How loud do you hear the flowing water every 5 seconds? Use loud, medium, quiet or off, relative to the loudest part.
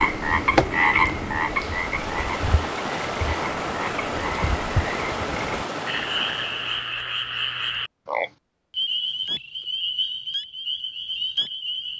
loud, loud, off.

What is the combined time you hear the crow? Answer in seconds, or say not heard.
not heard.